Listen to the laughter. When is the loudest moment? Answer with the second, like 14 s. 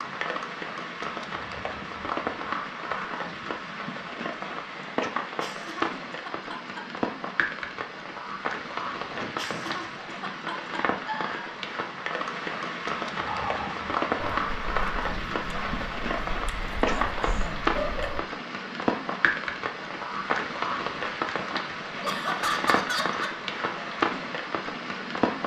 23 s.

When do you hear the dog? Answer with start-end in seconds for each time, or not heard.
13.2-18.2.